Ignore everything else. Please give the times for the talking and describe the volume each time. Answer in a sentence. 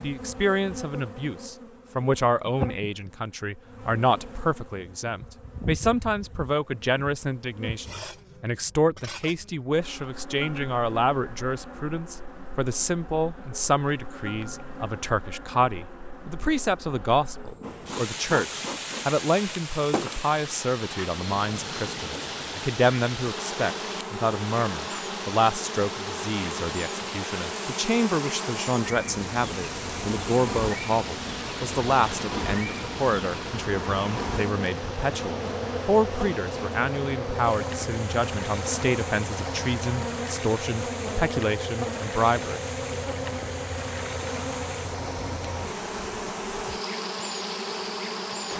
The talking can be heard from 0.0 to 42.6 s, at a steady volume.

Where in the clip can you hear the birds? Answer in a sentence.
You can't hear the birds here.